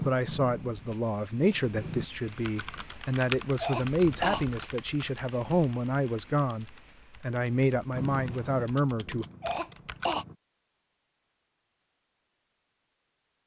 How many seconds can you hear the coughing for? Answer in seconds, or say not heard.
2 s.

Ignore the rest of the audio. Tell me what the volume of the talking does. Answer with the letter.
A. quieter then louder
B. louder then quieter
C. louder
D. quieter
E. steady
E.